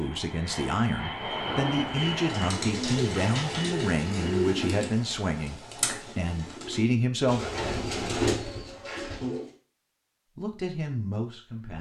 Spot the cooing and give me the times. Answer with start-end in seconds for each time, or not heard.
1.2-9.5.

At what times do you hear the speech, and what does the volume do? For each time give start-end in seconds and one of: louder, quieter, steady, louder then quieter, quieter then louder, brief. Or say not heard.
0.0-7.5 steady
10.3-11.7 brief.